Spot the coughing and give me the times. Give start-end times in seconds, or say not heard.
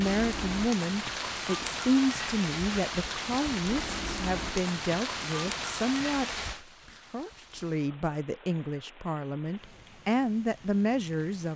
not heard.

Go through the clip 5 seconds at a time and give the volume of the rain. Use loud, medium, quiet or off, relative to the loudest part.
loud, medium, quiet.